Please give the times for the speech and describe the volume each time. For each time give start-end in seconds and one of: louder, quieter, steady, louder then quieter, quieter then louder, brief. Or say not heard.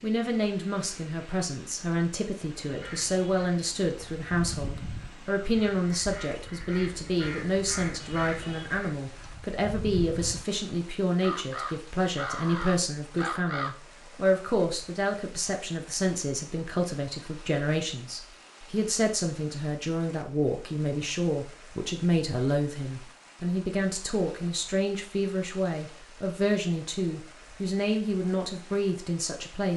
0.0-29.7 steady.